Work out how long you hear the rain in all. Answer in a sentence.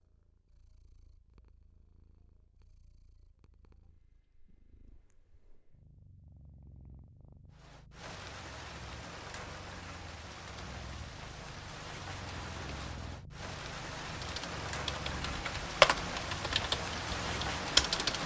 You can hear the rain for 11 seconds altogether.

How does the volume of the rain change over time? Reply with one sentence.
The loudness of the rain goes up.